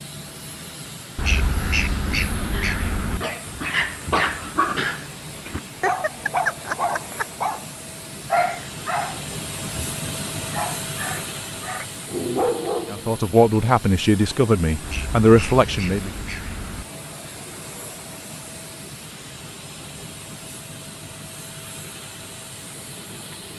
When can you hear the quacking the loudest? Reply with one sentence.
The loudest moment of the quacking is at 2 seconds.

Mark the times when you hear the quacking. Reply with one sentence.
The quacking can be heard from 1.1 to 3.2 s and from 14.8 to 16.9 s.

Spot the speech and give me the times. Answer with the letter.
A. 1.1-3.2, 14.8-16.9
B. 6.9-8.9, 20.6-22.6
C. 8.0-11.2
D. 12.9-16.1
D.